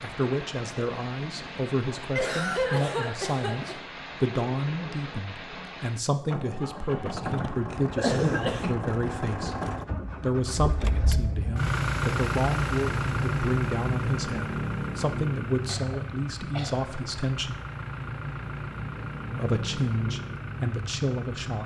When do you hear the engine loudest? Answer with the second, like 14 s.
12 s.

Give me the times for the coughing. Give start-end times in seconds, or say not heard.
2.1-3.8, 7.7-8.8, 15.7-16.9.